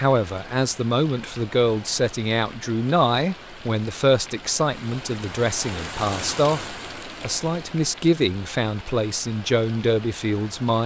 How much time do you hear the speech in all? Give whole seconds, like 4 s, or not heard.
11 s.